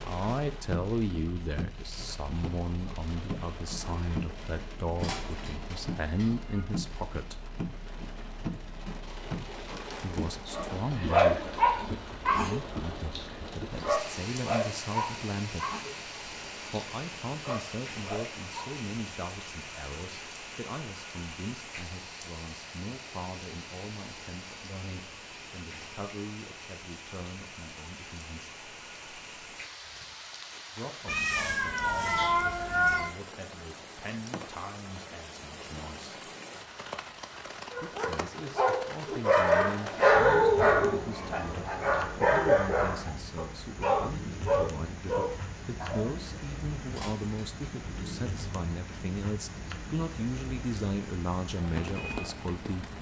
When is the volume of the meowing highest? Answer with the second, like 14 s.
33 s.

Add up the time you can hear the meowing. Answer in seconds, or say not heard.
5 s.